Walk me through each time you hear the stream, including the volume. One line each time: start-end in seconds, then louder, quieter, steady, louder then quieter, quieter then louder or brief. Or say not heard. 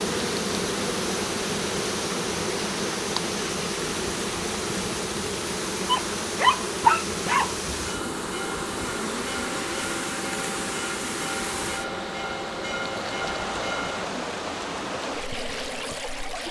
0.0-16.4 steady.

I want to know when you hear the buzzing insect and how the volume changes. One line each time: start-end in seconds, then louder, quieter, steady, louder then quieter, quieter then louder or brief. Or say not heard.
0.0-16.4 quieter.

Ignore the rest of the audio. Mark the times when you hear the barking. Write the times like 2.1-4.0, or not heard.
5.8-7.5.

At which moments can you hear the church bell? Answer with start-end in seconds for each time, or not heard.
7.8-14.1.